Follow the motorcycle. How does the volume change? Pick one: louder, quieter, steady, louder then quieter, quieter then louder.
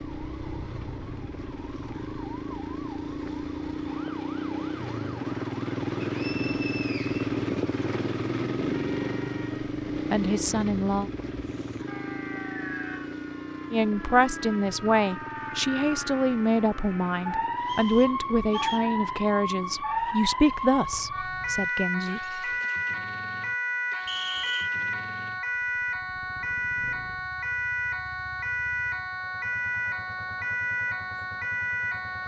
quieter.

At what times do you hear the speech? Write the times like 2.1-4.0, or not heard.
10.1-11.1, 13.7-22.4.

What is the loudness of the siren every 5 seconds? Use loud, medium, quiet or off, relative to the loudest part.
quiet, quiet, medium, loud, loud, loud, loud.